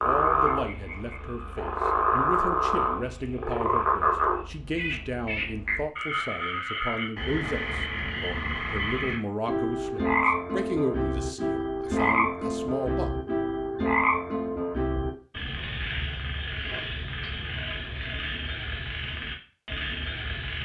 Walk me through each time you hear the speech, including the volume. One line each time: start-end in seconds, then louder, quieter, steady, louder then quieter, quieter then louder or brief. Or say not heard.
0.0-13.1 steady.